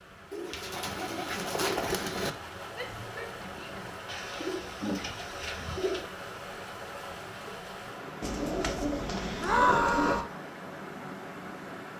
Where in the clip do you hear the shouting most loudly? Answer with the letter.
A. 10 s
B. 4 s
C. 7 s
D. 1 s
A.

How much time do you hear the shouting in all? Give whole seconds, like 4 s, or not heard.
2 s.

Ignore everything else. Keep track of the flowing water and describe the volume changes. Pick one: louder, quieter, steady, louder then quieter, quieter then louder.
steady.